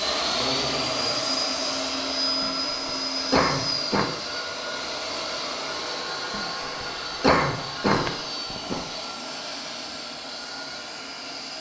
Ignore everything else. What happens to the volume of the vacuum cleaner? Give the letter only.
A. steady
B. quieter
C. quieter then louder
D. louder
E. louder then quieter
B.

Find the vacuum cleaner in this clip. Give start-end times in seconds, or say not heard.
0.0-11.5.